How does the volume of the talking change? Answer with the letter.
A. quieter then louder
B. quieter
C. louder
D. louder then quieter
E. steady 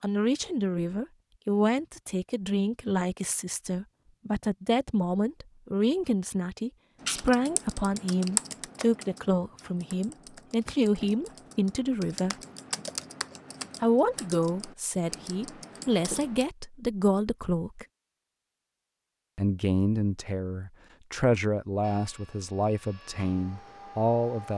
E.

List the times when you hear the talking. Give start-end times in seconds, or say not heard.
0.0-12.3, 13.8-17.9, 19.4-24.5.